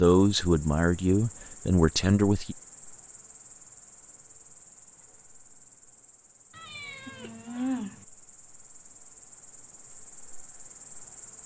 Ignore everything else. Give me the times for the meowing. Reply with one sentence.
The meowing can be heard from 6.5 to 8.1 s.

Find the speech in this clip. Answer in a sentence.
You can hear the speech from 0.0 to 2.5 s.